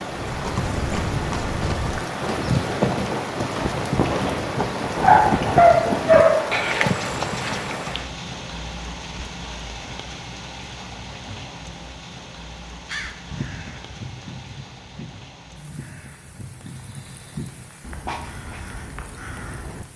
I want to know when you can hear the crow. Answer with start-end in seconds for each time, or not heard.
12.8-19.9.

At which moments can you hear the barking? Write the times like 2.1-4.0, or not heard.
5.0-6.9.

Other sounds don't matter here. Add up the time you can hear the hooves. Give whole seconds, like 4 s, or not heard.
8 s.